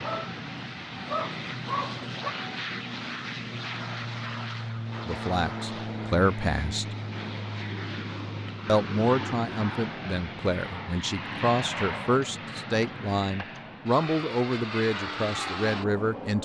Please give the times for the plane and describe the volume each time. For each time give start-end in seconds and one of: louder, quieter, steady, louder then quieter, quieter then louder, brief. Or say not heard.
0.0-16.4 steady.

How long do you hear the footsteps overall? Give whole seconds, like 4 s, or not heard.
not heard.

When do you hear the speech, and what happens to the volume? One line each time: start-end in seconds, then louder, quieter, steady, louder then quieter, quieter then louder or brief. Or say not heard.
5.0-6.8 brief
8.7-16.4 steady.